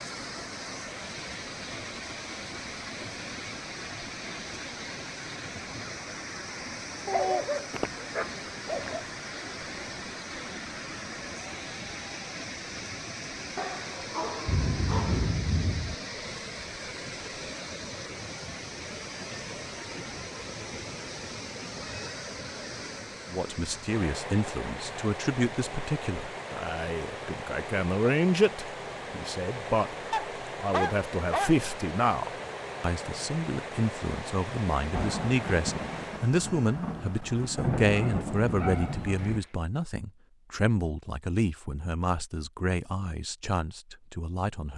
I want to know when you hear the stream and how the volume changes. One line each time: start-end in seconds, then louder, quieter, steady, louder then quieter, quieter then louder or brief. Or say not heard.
0.0-36.4 steady.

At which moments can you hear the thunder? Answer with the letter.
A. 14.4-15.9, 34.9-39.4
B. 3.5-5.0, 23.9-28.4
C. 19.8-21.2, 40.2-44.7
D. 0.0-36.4
A.